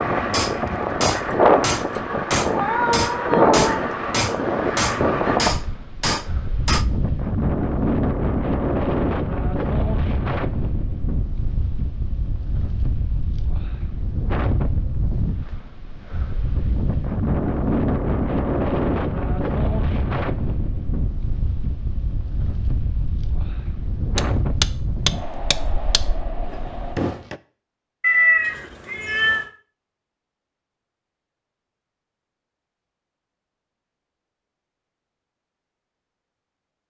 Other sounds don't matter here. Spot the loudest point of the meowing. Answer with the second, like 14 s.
28 s.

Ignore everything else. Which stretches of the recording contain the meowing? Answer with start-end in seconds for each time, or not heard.
2.5-3.8, 28.0-29.4.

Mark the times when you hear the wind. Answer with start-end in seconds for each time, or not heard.
0.0-27.0.